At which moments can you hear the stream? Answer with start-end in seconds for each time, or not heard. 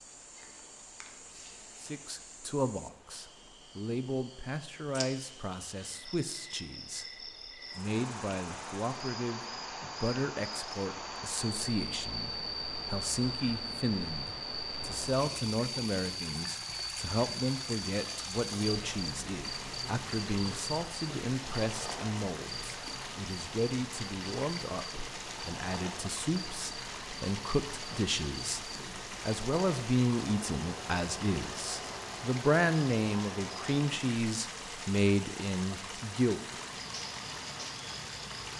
0.0-38.5.